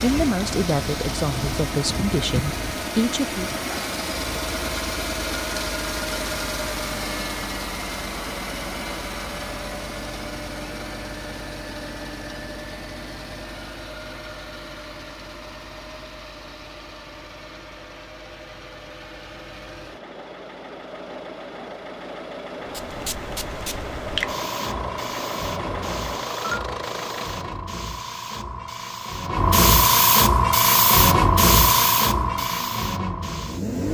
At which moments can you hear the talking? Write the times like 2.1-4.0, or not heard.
0.0-3.5.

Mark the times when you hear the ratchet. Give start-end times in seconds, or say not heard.
not heard.